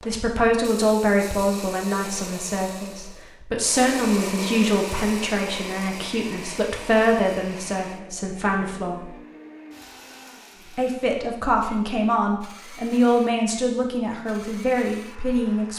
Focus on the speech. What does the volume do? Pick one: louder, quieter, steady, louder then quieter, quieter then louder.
steady.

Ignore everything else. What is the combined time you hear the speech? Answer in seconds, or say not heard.
14 s.